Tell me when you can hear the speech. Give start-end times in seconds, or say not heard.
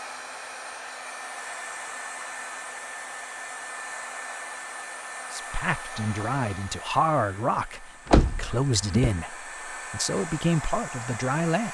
5.3-11.6.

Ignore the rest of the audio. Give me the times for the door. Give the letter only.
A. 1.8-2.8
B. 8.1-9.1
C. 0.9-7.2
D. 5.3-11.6
B.